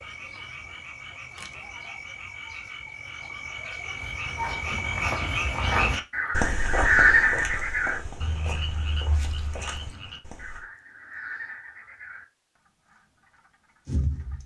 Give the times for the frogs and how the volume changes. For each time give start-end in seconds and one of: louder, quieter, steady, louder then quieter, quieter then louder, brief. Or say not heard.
0.0-12.2 louder then quieter
12.9-14.4 brief.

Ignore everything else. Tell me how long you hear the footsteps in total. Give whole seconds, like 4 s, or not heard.
7 s.